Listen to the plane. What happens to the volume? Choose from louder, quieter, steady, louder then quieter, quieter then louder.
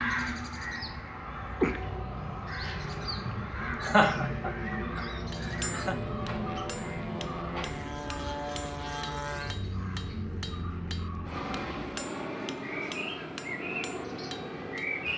louder.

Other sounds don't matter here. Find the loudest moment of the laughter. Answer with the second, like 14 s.
4 s.